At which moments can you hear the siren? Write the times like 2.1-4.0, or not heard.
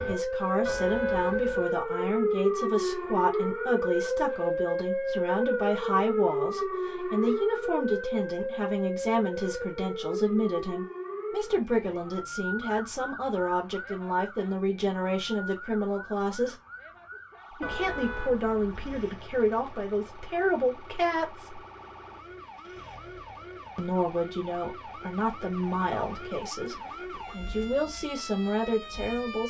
0.0-29.4.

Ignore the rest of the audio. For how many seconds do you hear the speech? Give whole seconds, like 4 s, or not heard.
26 s.